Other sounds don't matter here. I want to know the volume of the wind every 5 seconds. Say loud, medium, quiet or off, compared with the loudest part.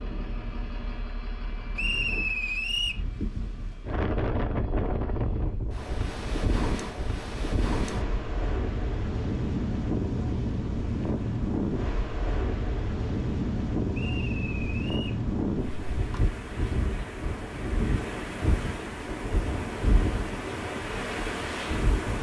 medium, loud, loud, loud, loud.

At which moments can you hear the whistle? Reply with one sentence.
You can hear the whistle from 1.8 to 3.0 s and from 13.9 to 15.2 s.